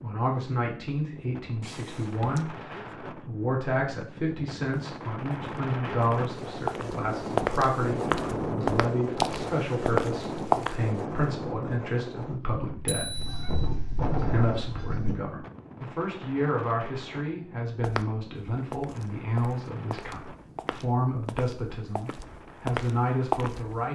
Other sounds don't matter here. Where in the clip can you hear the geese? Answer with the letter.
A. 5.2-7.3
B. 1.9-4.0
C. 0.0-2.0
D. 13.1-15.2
D.